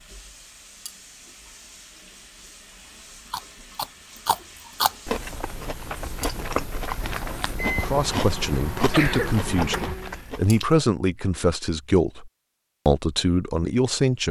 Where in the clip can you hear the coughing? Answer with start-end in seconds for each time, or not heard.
8.9-10.2.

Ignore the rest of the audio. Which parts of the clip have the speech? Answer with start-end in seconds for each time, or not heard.
7.8-14.2.